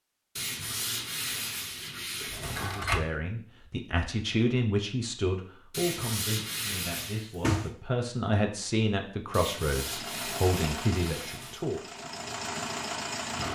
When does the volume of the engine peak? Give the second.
13 s.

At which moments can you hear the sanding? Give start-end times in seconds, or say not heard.
0.3-2.9, 5.7-7.3, 9.3-11.7.